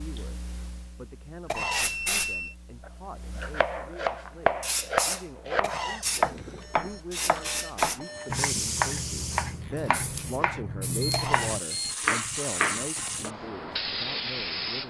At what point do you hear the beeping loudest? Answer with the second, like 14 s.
2 s.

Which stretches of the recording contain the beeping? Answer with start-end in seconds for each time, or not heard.
1.6-2.5, 6.2-8.3, 11.0-12.0.